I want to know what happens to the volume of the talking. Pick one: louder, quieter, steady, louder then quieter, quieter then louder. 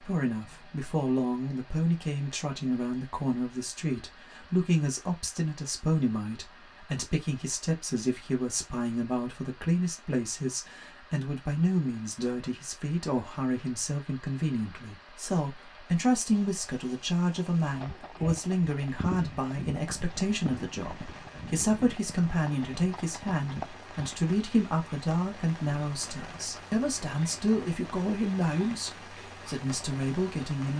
steady.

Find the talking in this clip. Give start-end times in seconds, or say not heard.
0.0-30.7.